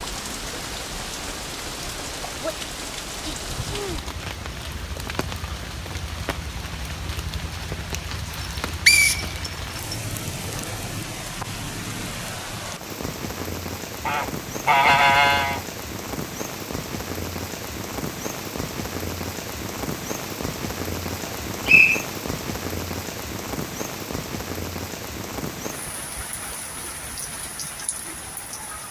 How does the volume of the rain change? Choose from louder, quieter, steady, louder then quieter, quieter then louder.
steady.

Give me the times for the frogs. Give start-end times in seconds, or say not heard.
not heard.